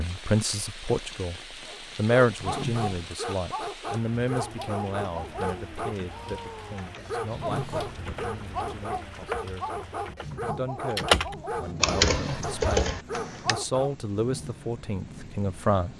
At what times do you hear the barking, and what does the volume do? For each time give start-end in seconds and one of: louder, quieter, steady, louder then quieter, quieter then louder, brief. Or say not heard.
1.6-13.9 steady.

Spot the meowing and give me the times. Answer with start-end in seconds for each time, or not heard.
2.4-3.0, 7.3-7.9, 12.1-12.7.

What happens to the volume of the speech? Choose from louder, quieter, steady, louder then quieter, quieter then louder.
quieter then louder.